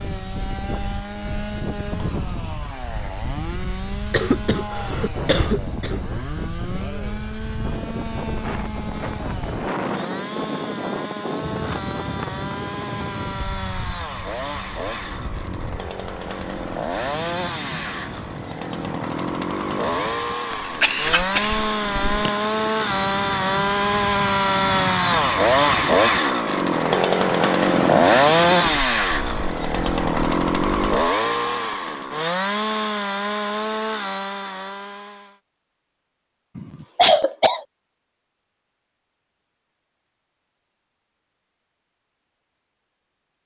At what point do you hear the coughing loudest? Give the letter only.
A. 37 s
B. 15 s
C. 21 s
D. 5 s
A.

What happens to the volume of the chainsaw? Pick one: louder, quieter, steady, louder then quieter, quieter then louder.
louder.